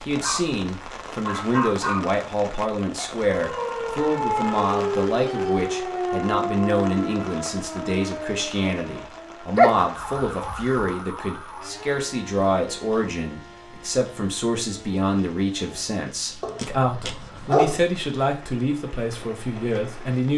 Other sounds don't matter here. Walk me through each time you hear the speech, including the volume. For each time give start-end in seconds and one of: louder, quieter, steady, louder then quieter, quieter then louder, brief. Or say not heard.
0.1-20.3 steady.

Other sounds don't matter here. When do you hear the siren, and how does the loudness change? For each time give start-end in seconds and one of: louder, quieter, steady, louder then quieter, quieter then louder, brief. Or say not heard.
3.4-16.0 quieter.